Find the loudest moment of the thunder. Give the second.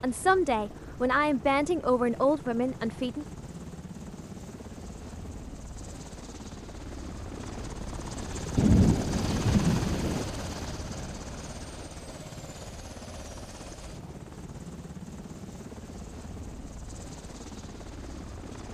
9 s.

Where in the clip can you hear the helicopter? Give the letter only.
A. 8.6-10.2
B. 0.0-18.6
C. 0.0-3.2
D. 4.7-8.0
B.